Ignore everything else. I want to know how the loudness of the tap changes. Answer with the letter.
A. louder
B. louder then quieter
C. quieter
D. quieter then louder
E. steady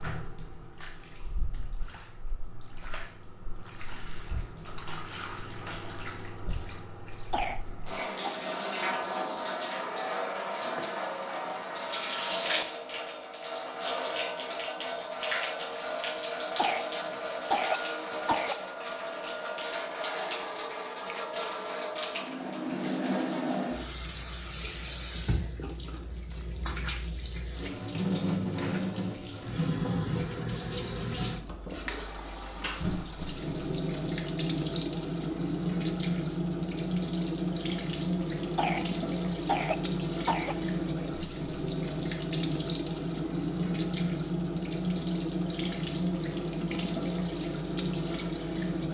A.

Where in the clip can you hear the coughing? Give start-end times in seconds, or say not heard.
7.3-8.4, 16.6-18.6, 38.5-40.5.